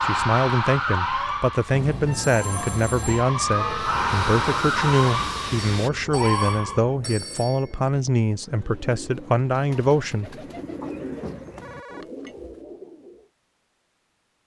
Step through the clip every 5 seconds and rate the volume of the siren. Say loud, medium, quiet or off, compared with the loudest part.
loud, loud, off.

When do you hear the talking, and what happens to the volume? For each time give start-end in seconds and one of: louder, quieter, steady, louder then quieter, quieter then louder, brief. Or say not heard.
0.0-10.3 steady.